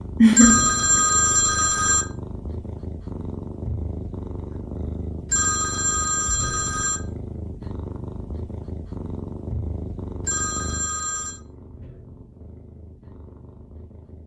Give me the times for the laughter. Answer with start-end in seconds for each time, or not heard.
0.2-1.1.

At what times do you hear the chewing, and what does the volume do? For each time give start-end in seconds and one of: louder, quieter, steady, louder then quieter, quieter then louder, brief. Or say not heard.
not heard.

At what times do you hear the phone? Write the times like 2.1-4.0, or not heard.
0.3-2.0, 5.3-7.0, 10.2-11.4.